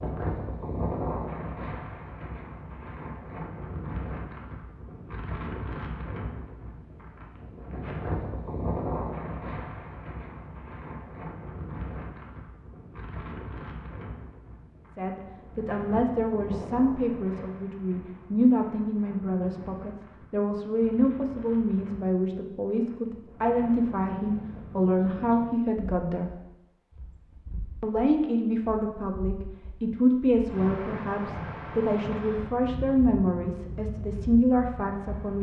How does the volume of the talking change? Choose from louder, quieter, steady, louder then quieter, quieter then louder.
steady.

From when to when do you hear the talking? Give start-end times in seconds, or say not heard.
14.9-26.3, 27.8-35.3.